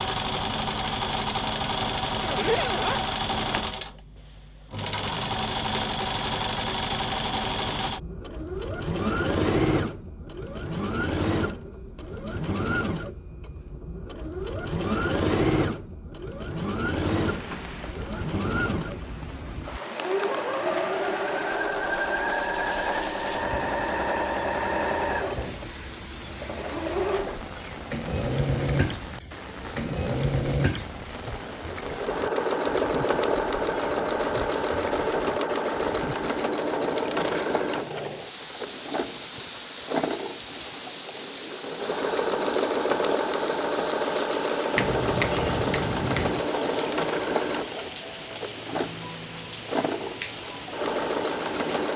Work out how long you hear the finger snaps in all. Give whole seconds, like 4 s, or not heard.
2 s.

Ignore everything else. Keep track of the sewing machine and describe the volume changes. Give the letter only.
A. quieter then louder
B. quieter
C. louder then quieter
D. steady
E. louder
D.